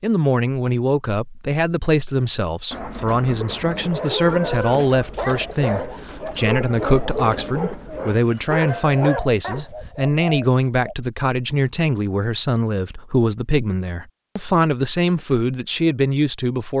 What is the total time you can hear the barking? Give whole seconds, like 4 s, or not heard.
6 s.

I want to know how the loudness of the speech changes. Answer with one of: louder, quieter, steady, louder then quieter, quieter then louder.
steady.